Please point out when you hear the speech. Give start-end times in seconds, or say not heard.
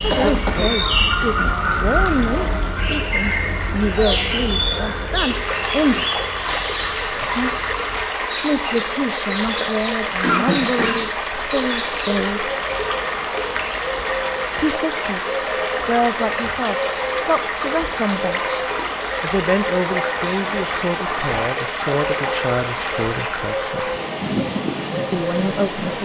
0.0-7.5, 8.4-12.5, 14.6-24.0, 25.1-26.0.